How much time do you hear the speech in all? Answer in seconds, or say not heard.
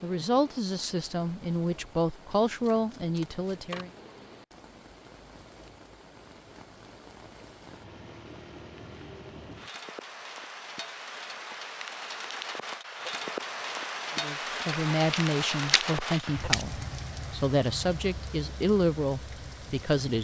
10 s.